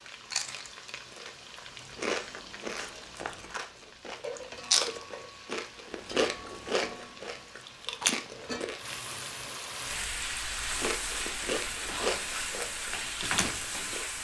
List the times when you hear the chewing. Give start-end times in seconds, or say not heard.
0.1-8.8, 10.6-14.1.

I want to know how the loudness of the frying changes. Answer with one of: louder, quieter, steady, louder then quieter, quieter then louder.
louder.